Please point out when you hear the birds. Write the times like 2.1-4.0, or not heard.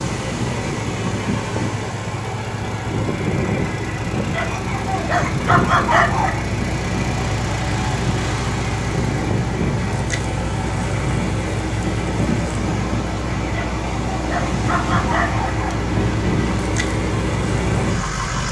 not heard.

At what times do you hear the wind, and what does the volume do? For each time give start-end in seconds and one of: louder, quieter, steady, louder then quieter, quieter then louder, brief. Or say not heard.
0.0-18.4 steady.